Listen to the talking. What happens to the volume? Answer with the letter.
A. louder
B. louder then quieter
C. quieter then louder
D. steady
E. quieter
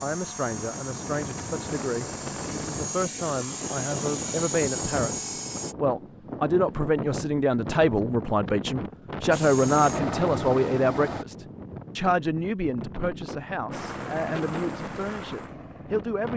B.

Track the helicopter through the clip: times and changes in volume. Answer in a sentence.
The helicopter can be heard from 0.0 to 5.8 s, getting louder; briefly from 9.3 to 11.2 s; and briefly from 13.7 to 16.3 s.